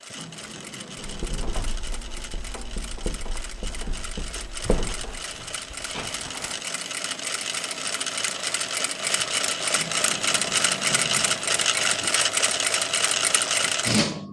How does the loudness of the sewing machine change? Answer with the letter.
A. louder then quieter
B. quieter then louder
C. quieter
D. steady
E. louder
E.